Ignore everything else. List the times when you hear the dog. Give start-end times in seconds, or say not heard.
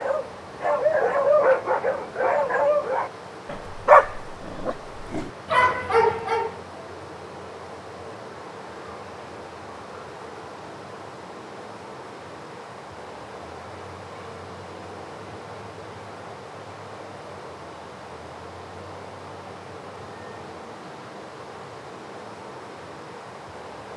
0.0-6.6.